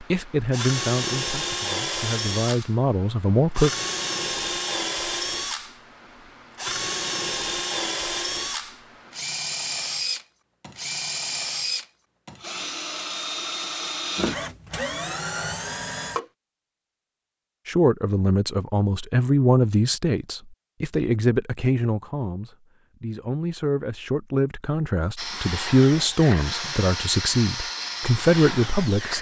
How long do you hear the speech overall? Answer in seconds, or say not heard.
15 s.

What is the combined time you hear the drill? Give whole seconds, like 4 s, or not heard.
20 s.